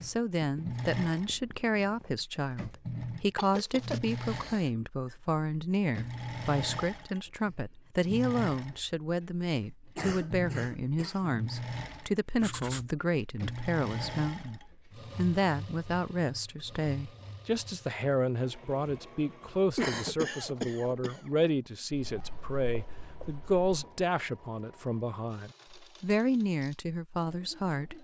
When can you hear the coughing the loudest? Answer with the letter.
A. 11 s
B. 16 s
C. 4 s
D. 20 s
D.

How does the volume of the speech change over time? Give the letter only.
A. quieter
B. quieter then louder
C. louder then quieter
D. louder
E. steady
E.